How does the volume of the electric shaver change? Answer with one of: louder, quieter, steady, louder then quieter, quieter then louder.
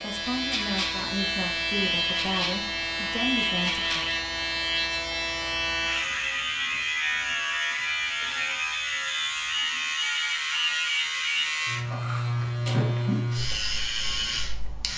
steady.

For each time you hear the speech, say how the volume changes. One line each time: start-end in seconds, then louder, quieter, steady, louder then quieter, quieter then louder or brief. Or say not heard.
0.0-4.0 steady.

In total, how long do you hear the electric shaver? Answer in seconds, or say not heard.
15 s.